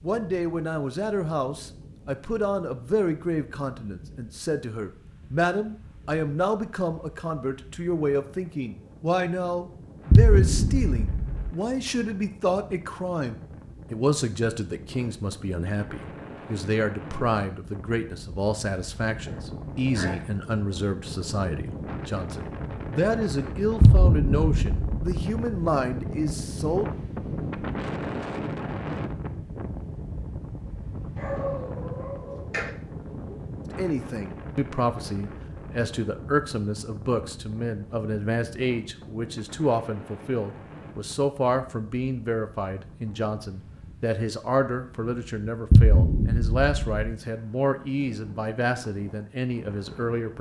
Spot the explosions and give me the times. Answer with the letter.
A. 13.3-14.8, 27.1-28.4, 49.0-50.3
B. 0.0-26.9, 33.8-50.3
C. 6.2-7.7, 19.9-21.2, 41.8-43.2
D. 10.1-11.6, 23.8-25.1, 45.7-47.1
D.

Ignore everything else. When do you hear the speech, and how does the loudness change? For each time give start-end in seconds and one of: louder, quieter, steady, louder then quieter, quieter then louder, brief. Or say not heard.
0.0-26.9 steady
33.8-50.3 steady.